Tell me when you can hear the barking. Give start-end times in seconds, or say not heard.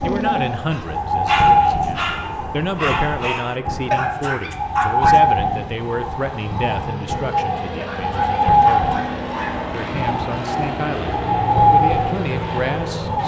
0.0-5.2, 7.7-9.7.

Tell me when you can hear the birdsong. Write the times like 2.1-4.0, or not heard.
0.0-13.2.